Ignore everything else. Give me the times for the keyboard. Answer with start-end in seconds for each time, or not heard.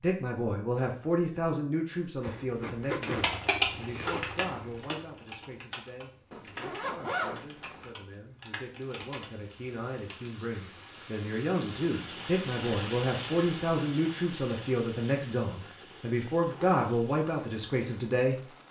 3.0-10.2.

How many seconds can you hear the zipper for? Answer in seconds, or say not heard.
5 s.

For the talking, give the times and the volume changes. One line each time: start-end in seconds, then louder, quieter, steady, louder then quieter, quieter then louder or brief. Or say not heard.
0.0-18.4 quieter then louder.